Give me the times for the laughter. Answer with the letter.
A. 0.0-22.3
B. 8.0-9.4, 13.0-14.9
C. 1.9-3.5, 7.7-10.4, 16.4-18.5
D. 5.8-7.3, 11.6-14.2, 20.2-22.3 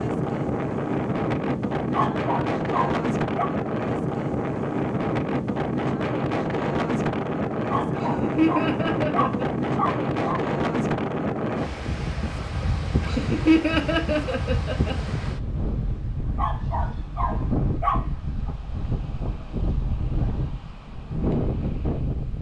B.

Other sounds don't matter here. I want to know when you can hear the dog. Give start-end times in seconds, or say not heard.
1.9-3.5, 7.7-10.4, 16.4-18.5.